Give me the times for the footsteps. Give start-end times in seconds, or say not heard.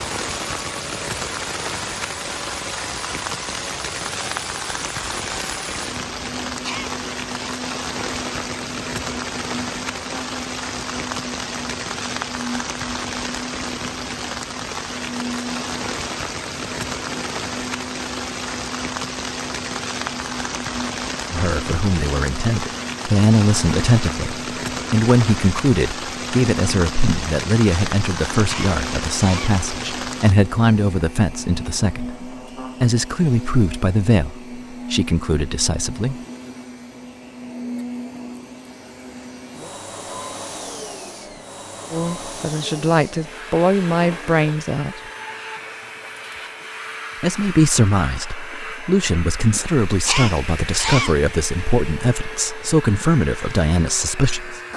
not heard.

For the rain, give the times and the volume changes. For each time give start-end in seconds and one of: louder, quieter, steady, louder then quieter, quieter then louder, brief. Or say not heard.
0.0-30.4 steady.